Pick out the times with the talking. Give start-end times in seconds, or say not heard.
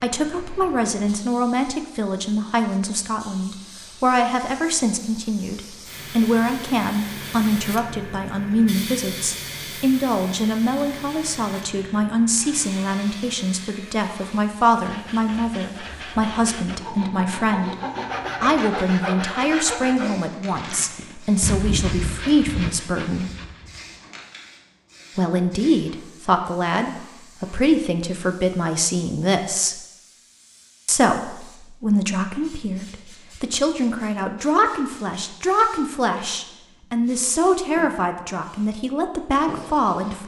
0.0-17.8, 18.4-23.3, 25.1-29.8, 30.9-40.2.